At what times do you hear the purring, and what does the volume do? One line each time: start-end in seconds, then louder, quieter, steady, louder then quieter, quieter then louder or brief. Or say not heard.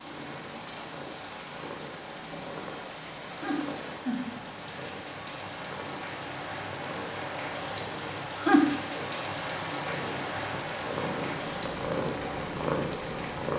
0.0-13.5 louder.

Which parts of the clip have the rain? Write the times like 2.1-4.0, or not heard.
0.0-13.5.